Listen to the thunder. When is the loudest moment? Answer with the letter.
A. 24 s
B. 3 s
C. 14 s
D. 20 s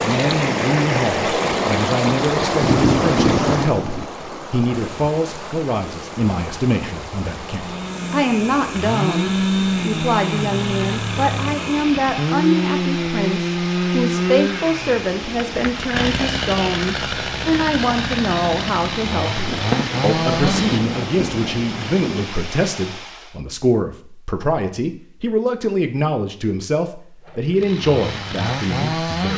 B.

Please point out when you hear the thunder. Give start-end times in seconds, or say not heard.
2.5-4.0, 19.4-22.3.